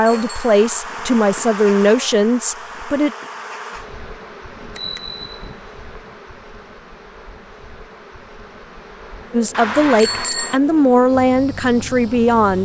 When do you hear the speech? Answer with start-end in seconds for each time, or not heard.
0.0-3.1, 9.3-12.6.